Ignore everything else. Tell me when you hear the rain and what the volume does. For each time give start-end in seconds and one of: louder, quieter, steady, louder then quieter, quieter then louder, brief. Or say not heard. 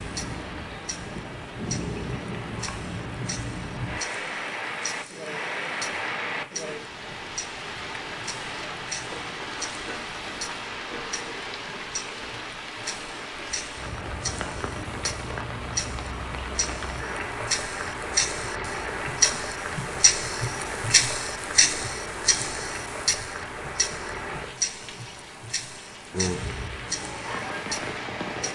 0.0-28.5 steady.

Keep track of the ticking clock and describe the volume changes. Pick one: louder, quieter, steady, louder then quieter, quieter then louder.
louder then quieter.